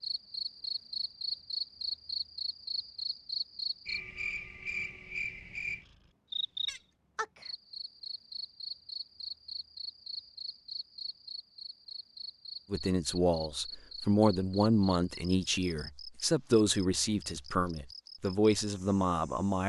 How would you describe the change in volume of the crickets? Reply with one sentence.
The loudness of the crickets goes down.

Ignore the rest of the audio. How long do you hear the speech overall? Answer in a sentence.
You can hear the speech for 7 seconds altogether.